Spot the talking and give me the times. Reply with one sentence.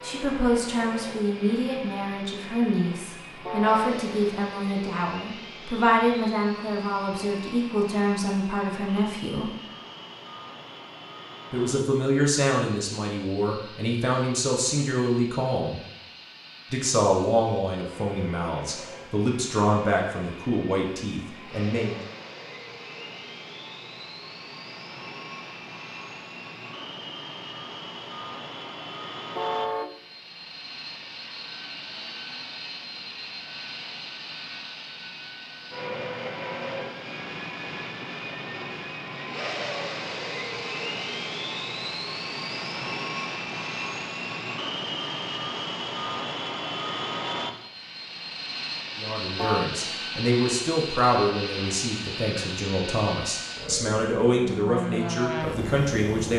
You can hear the talking from 0.0 to 9.5 s, from 11.5 to 15.8 s, from 16.7 to 22.0 s and from 49.0 to 56.3 s.